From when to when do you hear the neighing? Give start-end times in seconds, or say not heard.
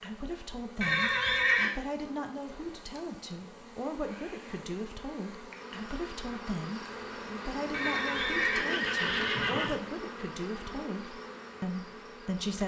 0.8-1.8, 7.7-9.8.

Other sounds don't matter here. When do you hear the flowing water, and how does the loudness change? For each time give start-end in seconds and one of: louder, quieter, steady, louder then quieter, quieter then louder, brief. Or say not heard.
not heard.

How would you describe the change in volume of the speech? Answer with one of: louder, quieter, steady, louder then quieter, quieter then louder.
steady.